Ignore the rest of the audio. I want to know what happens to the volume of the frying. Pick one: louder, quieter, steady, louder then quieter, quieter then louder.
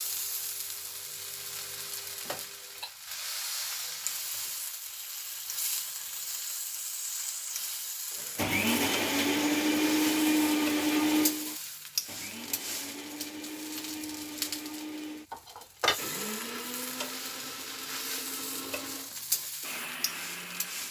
steady.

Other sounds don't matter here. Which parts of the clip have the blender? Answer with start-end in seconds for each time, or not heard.
8.3-20.8.